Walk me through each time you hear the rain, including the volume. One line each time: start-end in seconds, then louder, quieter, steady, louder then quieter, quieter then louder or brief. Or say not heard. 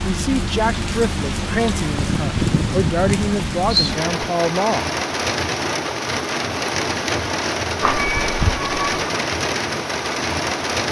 0.0-10.8 steady.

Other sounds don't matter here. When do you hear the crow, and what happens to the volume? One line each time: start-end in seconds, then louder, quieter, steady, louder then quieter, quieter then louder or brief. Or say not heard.
not heard.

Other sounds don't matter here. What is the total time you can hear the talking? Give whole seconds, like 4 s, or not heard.
5 s.